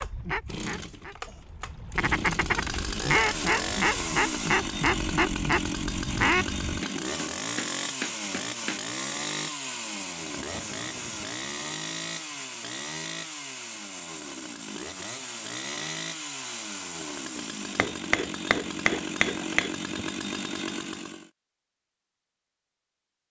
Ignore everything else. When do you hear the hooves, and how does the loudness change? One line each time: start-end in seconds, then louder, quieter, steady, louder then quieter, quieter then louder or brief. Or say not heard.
not heard.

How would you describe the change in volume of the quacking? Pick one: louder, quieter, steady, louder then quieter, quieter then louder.
louder.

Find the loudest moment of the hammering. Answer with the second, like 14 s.
19 s.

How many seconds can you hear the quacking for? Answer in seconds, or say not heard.
7 s.